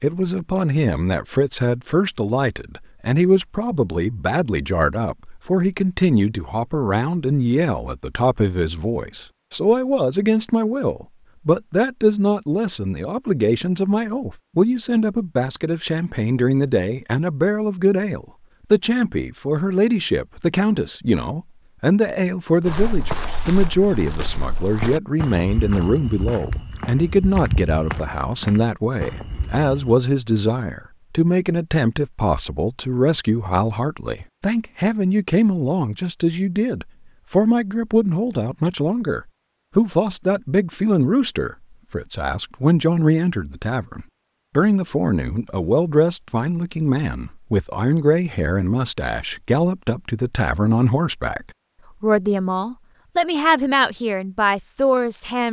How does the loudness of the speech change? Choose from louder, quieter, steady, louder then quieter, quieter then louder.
steady.